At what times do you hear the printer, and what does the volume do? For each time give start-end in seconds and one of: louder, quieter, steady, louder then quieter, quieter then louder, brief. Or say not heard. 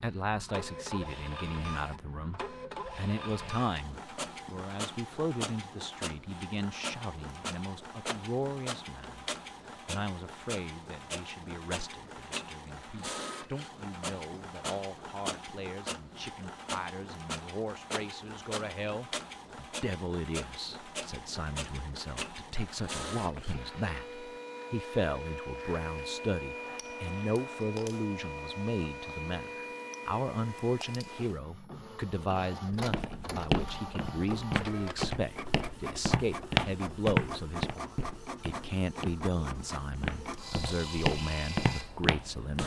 0.0-42.6 steady.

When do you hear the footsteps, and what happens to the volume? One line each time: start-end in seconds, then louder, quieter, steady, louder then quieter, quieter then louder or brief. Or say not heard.
32.7-42.6 quieter then louder.